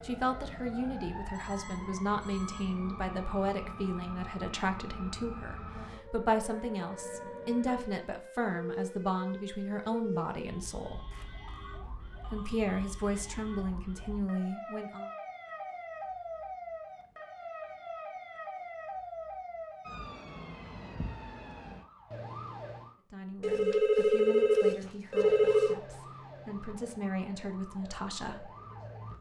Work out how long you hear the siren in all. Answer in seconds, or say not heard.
27 s.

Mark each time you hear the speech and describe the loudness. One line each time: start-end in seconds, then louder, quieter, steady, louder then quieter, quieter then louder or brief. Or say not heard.
0.0-11.0 steady
12.3-15.1 brief
23.1-28.5 quieter then louder.